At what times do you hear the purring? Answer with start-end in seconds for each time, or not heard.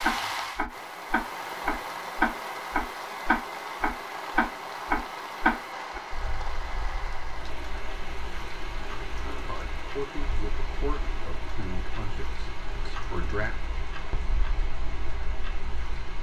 not heard.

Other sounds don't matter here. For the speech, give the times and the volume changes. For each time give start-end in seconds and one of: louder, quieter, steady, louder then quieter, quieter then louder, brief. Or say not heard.
9.3-13.6 quieter.